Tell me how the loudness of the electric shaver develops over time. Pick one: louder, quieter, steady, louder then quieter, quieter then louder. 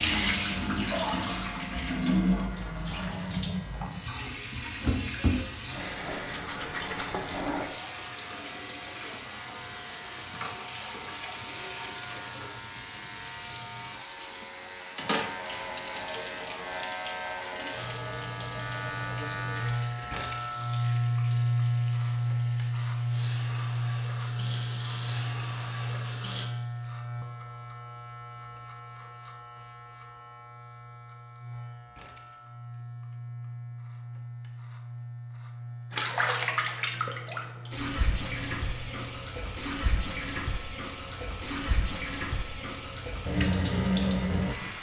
louder then quieter.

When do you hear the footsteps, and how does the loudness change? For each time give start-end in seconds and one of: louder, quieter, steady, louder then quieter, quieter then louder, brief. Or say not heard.
not heard.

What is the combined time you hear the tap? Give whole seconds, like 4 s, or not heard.
35 s.